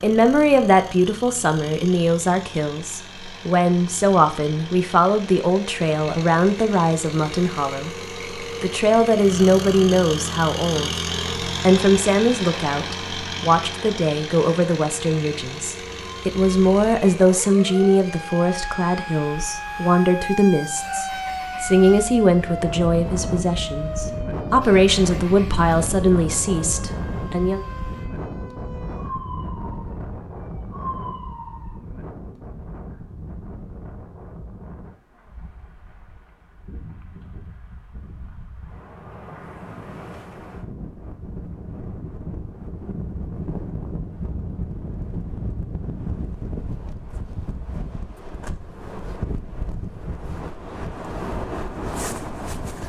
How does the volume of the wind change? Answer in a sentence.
The loudness of the wind goes down, then up.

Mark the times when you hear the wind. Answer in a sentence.
You can hear the wind from 22.2 to 52.8 s.